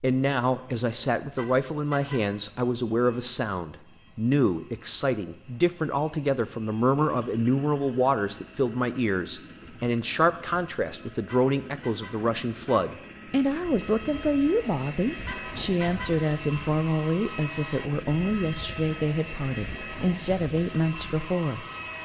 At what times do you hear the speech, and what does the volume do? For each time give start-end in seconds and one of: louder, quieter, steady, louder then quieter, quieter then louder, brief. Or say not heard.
0.0-21.6 steady.